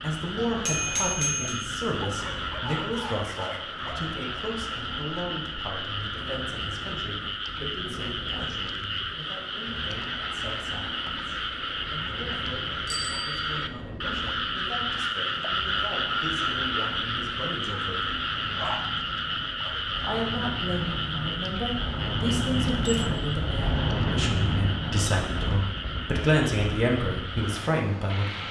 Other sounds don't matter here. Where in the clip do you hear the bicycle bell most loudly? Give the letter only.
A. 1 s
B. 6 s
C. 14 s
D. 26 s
A.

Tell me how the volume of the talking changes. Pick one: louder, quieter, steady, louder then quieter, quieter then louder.
quieter then louder.